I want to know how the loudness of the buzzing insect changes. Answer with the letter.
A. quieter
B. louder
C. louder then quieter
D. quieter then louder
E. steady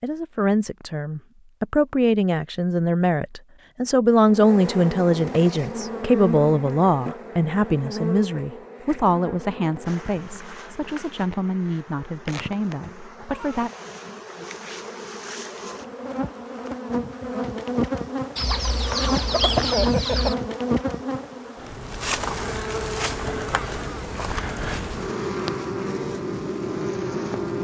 D.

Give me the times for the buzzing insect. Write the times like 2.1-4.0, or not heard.
4.2-27.5.